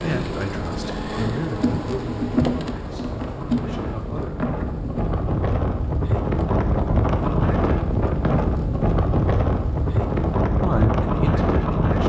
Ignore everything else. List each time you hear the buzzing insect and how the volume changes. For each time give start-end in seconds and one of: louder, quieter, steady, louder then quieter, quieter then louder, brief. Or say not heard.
0.0-10.4 quieter.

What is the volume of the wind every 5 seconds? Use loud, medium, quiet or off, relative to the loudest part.
medium, loud, loud.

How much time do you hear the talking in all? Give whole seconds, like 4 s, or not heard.
6 s.